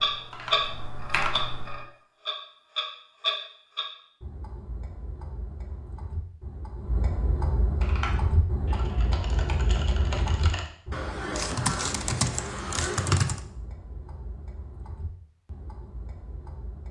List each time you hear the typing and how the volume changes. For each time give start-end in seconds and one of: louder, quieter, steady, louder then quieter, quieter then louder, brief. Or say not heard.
0.0-1.9 brief
7.8-13.4 louder.